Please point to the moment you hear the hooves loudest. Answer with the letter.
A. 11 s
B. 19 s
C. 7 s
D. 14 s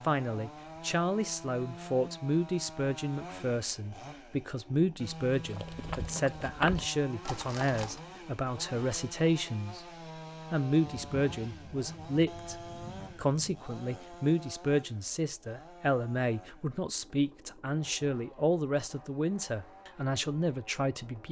C.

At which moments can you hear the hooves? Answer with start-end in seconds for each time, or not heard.
5.3-8.1.